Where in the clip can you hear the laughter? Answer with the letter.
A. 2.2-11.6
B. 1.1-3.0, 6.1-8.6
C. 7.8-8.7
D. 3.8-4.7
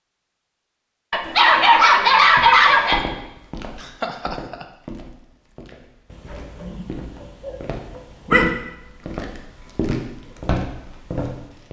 D.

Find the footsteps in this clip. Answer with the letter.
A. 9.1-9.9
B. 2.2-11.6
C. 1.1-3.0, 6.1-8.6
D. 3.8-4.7
B.